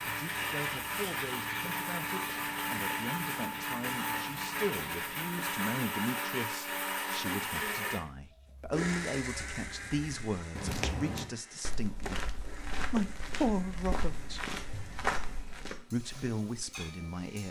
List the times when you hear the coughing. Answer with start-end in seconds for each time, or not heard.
not heard.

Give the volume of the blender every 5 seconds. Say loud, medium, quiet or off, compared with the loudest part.
loud, loud, quiet, quiet.